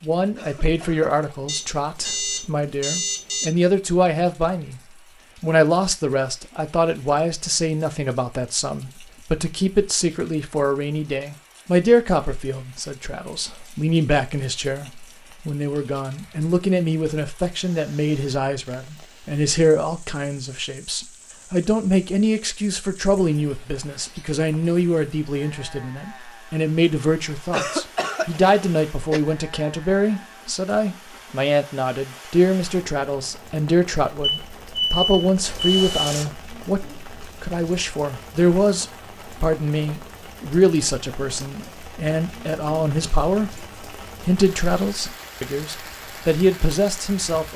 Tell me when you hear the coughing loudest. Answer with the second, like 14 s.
28 s.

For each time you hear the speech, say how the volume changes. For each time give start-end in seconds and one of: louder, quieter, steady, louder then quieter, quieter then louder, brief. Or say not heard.
0.0-4.8 quieter then louder
5.4-47.5 steady.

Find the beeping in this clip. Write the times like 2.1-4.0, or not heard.
1.4-3.5, 34.4-36.2.